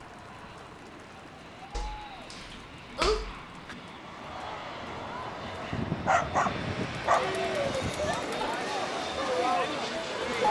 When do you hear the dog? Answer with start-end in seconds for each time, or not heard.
1.7-3.8, 5.7-8.2.